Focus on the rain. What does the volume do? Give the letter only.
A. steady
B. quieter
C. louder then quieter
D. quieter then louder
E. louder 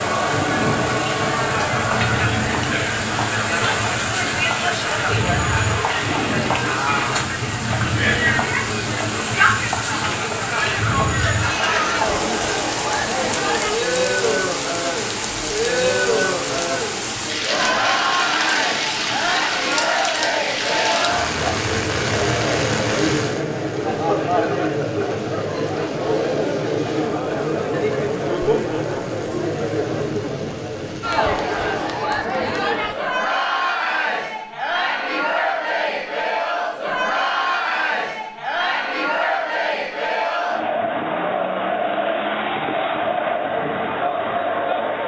B.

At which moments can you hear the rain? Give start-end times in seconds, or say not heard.
0.0-32.1.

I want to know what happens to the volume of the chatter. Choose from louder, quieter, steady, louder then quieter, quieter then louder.
steady.